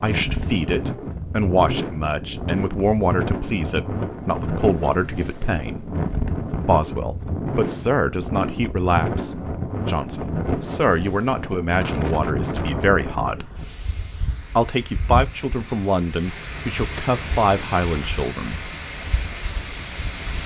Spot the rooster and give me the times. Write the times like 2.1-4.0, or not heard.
not heard.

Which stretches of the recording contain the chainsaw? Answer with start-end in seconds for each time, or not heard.
not heard.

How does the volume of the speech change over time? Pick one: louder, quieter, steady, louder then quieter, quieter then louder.
steady.